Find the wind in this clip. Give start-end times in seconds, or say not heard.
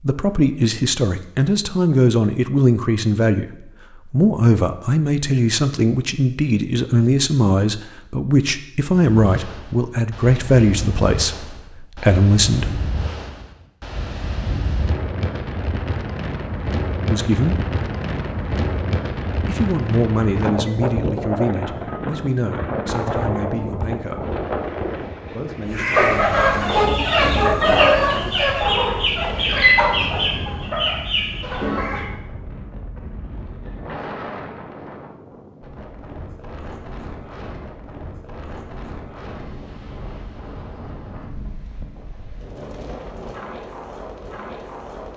8.9-45.1.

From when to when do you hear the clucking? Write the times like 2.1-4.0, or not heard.
25.7-32.1.